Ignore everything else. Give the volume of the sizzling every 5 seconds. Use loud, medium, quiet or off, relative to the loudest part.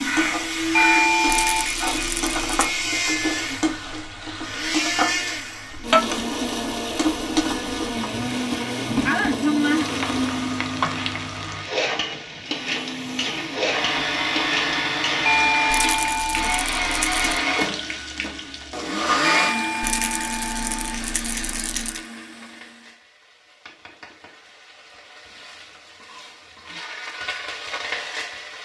loud, loud, loud, medium, quiet, medium.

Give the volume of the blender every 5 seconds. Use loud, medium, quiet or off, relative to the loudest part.
loud, loud, loud, loud, medium, off.